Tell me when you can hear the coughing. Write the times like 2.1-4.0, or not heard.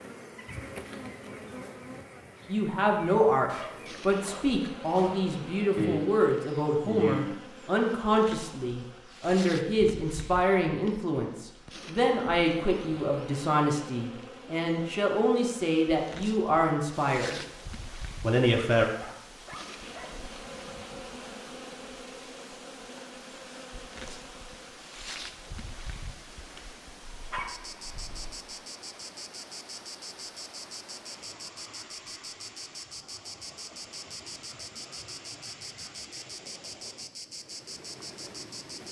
5.8-7.2.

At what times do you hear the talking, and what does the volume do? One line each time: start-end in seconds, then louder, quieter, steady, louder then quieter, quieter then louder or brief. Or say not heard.
2.5-17.4 steady
18.2-18.9 brief.